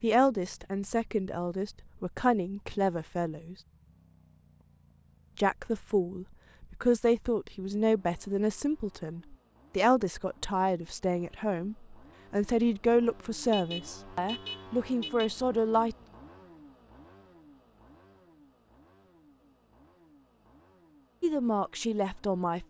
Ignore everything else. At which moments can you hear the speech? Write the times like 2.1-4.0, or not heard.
0.0-3.5, 5.3-15.9, 21.2-22.6.